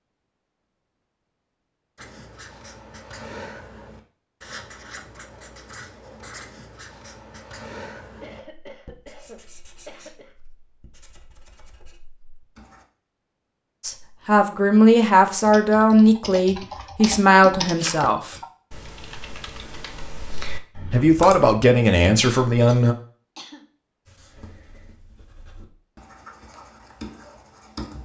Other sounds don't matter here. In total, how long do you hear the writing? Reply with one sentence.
The writing can be heard for 15 seconds in total.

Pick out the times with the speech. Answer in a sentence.
The speech can be heard from 13.8 to 18.4 s and from 20.9 to 22.9 s.